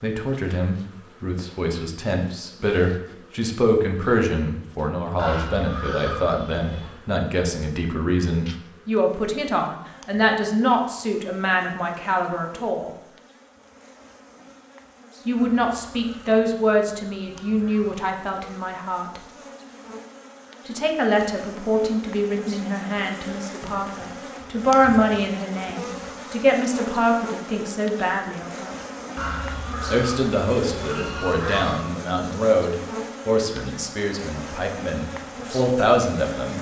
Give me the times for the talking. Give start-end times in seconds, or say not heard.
0.0-12.9, 15.2-19.2, 20.6-28.7, 29.9-36.5.